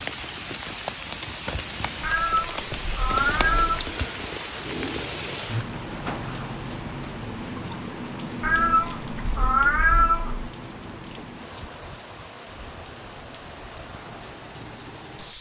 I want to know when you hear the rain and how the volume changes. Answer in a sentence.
The rain can be heard from 0.0 to 15.3 s, getting quieter.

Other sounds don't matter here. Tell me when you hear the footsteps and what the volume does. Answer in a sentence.
The footsteps can't be heard in this clip.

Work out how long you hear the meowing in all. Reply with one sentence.
The meowing can be heard for 4 seconds in total.